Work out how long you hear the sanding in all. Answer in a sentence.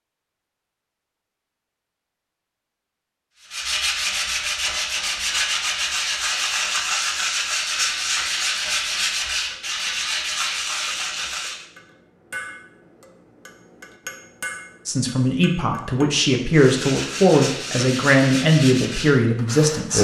You can hear the sanding for 12 seconds altogether.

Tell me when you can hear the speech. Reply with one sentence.
The speech can be heard from 14.8 to 19.9 s.